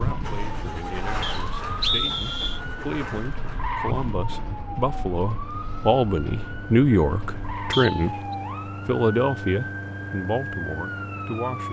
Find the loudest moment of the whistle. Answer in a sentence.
The loudest moment of the whistle is at 2 seconds.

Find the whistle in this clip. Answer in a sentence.
The whistle can be heard from 1.2 to 2.6 s and from 7.7 to 8.3 s.